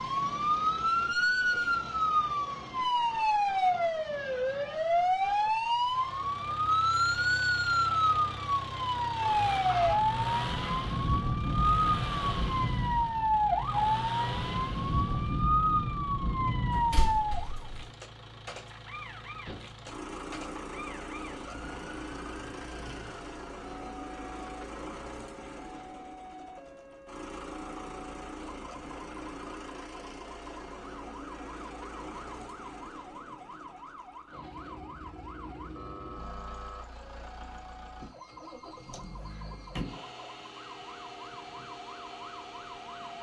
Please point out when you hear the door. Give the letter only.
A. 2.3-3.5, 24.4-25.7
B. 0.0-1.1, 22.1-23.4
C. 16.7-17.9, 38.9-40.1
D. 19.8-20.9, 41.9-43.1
C.